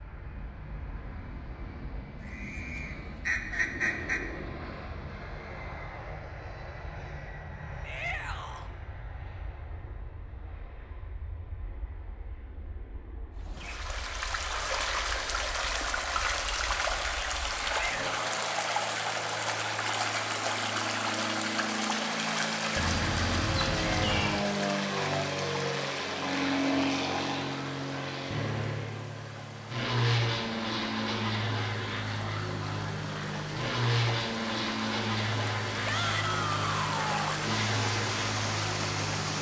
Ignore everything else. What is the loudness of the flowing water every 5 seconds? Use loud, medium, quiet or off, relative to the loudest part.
off, off, loud, loud, loud, medium, medium, loud.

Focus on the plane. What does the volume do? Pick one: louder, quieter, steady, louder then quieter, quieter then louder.
quieter then louder.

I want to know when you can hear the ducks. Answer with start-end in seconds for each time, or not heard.
2.2-4.2, 22.8-24.4.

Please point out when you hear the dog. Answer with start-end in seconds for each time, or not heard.
not heard.